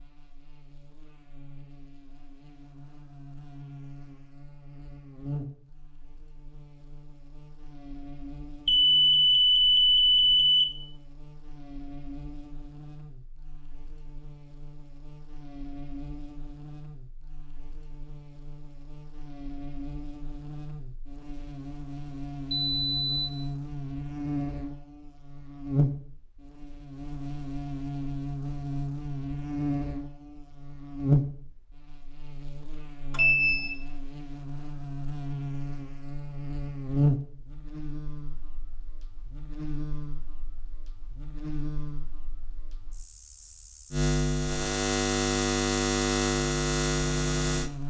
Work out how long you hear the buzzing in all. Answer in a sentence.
The buzzing can be heard for 48 seconds in total.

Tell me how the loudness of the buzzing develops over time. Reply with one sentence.
The volume of the buzzing goes up.